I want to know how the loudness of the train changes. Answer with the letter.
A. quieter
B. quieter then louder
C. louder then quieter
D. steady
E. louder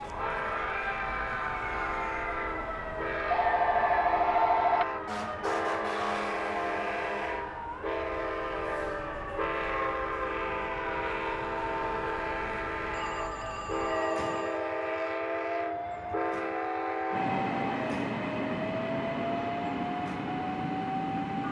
D.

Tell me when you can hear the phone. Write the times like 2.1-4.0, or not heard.
3.2-4.8, 12.9-14.6.